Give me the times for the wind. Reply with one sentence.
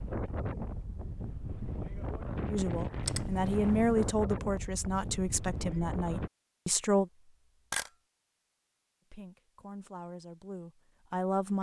You can hear the wind from 0.0 to 6.3 s.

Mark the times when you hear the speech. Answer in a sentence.
You can hear the speech from 2.5 to 7.1 s and from 9.1 to 11.5 s.